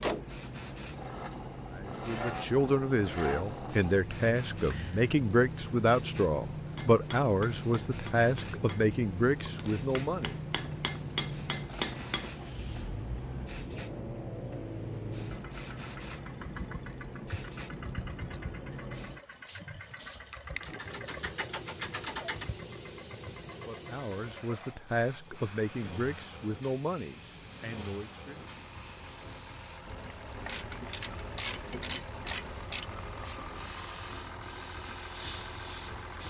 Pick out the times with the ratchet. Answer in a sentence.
The ratchet can be heard from 3.4 to 5.7 s, from 20.6 to 22.5 s and from 30.4 to 32.9 s.